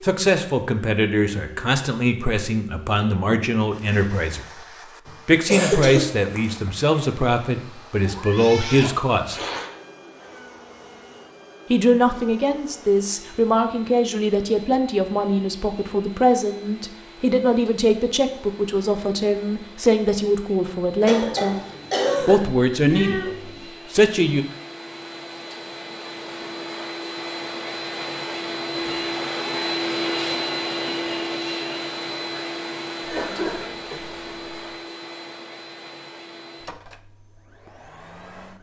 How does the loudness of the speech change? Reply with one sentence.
The loudness of the speech stays about the same.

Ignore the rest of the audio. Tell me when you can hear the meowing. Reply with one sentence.
The meowing can be heard from 8.0 to 9.7 s and from 22.9 to 23.6 s.